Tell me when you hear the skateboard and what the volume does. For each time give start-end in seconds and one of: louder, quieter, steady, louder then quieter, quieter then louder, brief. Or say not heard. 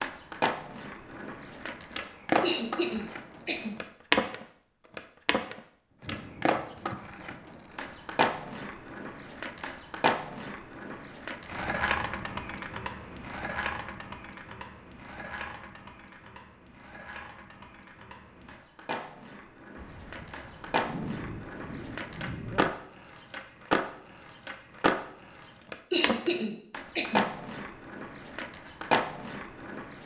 0.0-30.0 quieter then louder.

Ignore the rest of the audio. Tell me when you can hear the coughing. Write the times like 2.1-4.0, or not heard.
2.4-3.8, 25.9-27.3.